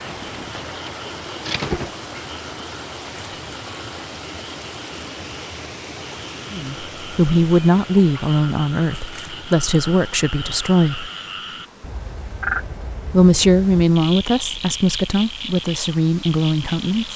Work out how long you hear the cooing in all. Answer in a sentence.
You can hear the cooing for 2 seconds altogether.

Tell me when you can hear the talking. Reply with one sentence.
The talking can be heard from 6.5 to 11.1 s and from 13.1 to 17.1 s.